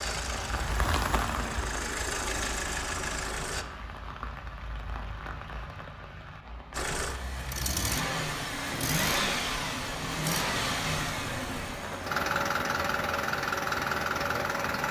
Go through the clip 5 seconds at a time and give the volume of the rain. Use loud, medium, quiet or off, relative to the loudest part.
loud, medium, loud.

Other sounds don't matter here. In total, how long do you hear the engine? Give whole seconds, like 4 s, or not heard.
12 s.